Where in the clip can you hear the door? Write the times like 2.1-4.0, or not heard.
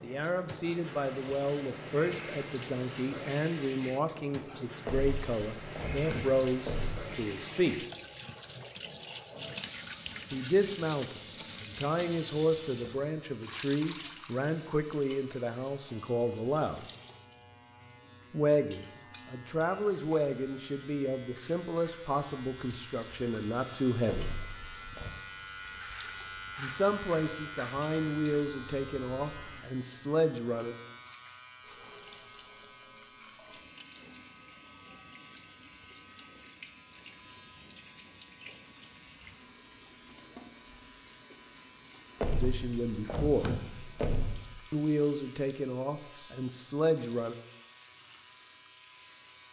4.8-7.2, 24.1-25.1, 42.2-44.5.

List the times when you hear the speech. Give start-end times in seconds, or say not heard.
0.0-7.8, 10.3-16.9, 18.3-24.4, 26.6-30.8, 42.4-43.5, 44.7-47.4.